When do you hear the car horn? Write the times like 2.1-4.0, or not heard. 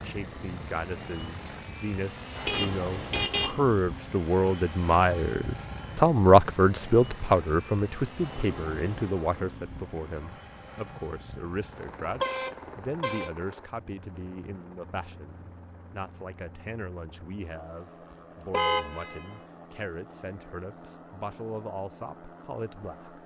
2.4-3.5, 11.9-13.3, 18.5-19.4.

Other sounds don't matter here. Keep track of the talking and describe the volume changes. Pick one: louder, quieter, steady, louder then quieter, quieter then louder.
louder then quieter.